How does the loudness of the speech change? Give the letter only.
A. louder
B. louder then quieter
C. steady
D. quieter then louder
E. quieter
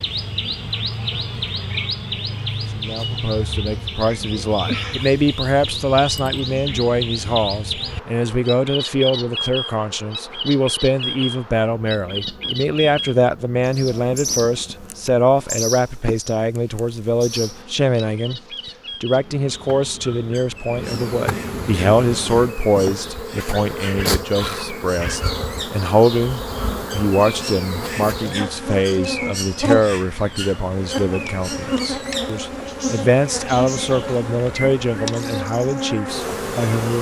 C.